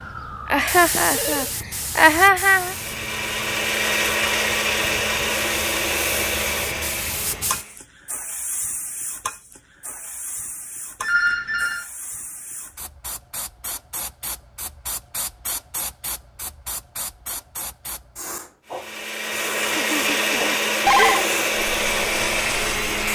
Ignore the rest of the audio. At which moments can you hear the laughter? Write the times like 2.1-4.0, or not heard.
0.5-2.8, 19.8-21.2.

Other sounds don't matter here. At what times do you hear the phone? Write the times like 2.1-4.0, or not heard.
0.9-1.5, 11.0-11.8, 20.4-21.2.